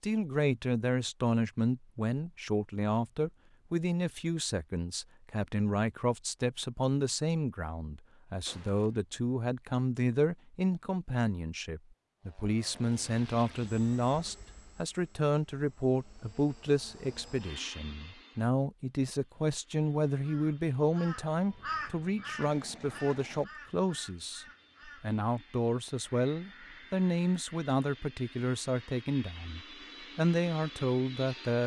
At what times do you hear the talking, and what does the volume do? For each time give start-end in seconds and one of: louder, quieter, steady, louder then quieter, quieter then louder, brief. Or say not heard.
0.0-31.6 steady.